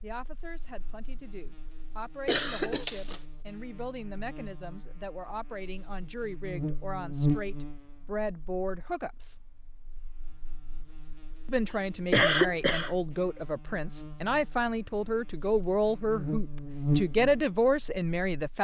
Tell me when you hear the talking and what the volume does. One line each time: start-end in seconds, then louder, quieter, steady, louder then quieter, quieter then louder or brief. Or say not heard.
0.0-9.4 louder
11.4-18.5 louder.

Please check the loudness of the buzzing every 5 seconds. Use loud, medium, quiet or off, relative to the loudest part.
quiet, loud, quiet, loud.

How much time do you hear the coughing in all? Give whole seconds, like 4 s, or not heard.
2 s.